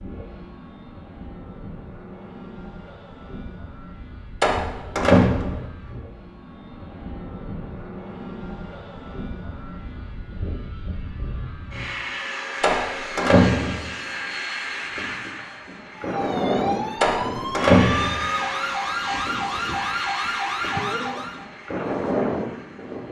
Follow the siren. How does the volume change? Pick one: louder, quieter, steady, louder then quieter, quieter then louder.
steady.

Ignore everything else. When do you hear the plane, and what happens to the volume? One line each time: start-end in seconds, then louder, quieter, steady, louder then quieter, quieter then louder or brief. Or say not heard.
0.0-23.0 louder.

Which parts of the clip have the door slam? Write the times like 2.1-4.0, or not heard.
4.4-5.7, 12.6-13.8, 17.0-18.2.